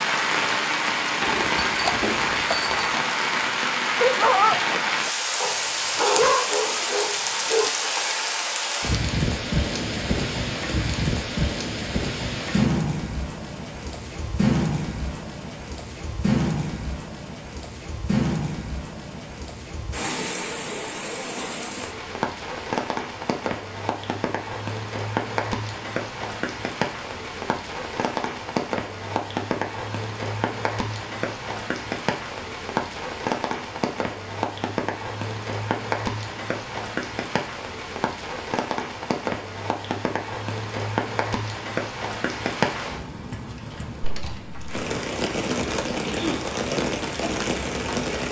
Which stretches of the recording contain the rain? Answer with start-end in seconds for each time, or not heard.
0.0-48.2.